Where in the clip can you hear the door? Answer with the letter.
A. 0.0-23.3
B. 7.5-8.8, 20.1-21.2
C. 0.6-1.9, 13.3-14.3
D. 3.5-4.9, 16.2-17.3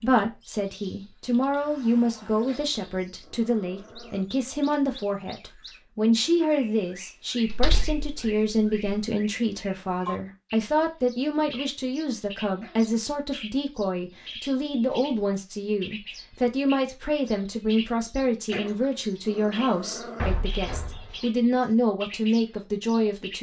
B.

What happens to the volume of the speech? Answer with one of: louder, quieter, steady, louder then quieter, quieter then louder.
steady.